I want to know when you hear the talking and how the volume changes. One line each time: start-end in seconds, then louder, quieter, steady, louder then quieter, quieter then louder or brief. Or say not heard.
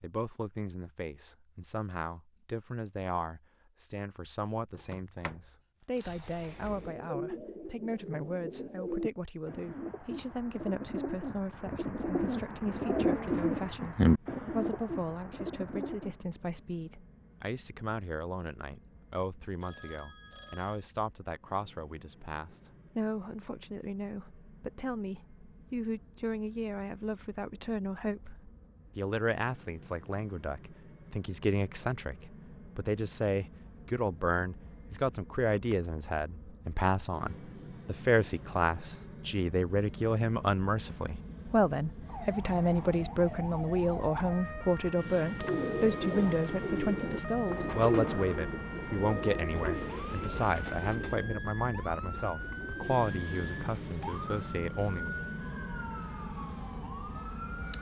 0.0-55.1 louder.